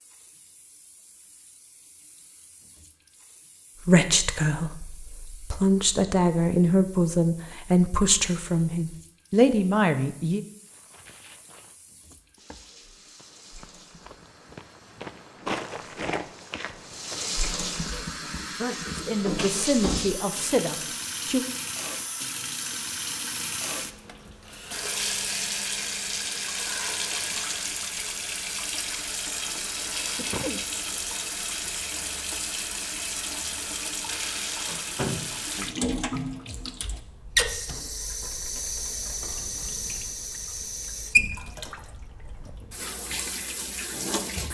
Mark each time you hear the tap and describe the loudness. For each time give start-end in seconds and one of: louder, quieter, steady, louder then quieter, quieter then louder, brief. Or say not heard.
0.0-44.4 louder.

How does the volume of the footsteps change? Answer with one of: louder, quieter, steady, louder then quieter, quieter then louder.
louder then quieter.